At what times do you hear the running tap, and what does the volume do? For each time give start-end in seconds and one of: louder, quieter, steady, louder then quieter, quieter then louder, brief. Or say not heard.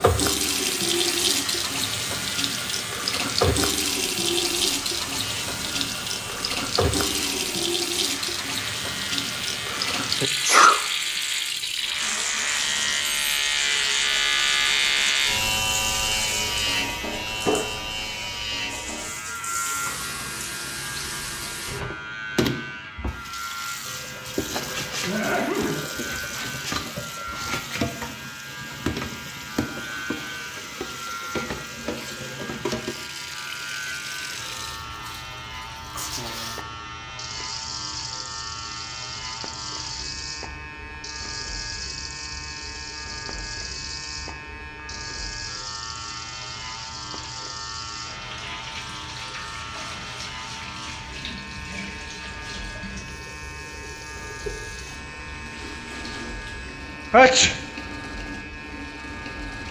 0.0-59.6 quieter.